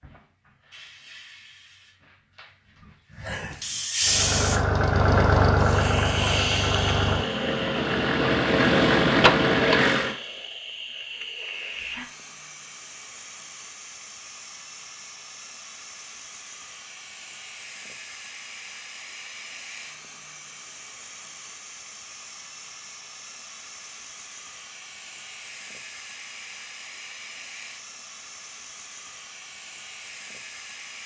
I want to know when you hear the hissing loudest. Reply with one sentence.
The loudest moment of the hissing is at 4 seconds.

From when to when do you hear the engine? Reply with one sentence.
You can hear the engine from 4.0 to 10.2 s.